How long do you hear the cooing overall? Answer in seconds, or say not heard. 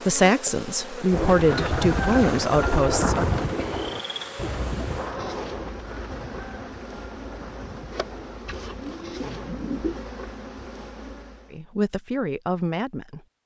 9 s.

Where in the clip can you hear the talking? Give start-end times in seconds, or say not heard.
0.1-3.4, 11.5-13.2.